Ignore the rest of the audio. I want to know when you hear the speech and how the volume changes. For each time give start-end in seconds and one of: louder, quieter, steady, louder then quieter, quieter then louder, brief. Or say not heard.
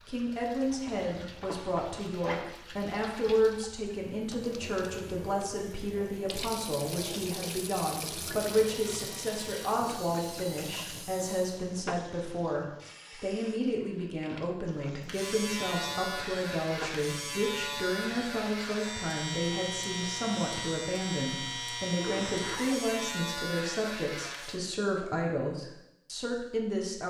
0.1-27.0 steady.